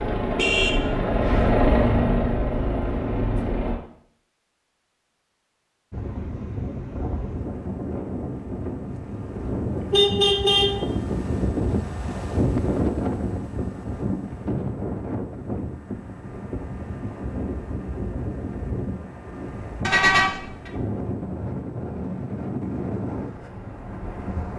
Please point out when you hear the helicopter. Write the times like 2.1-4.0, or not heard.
0.0-3.8.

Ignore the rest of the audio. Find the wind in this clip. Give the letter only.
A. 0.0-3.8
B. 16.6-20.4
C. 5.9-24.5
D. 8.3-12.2
C.